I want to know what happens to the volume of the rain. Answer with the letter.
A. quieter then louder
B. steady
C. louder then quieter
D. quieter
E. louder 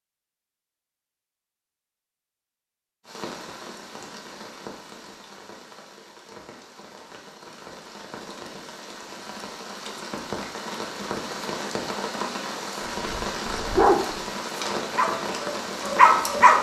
E.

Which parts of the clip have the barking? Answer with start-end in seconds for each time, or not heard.
13.1-16.5.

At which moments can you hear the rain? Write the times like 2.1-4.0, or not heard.
3.0-16.5.